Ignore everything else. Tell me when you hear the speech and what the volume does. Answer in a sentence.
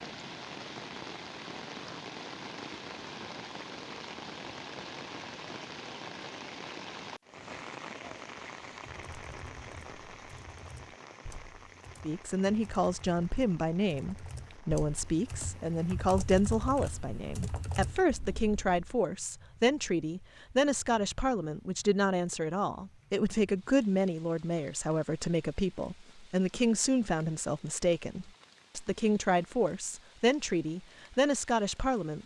You can hear the speech from 12.0 to 32.2 s, at a steady volume.